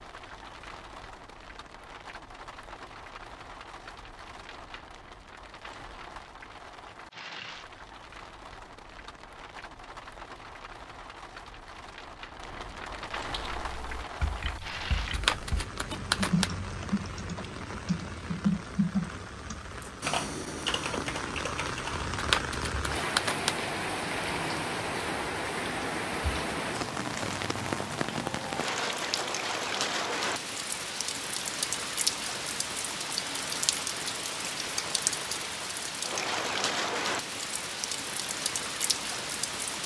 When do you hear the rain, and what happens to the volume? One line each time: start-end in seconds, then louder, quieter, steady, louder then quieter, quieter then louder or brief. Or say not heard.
0.0-39.8 louder.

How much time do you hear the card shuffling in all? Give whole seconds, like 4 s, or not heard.
3 s.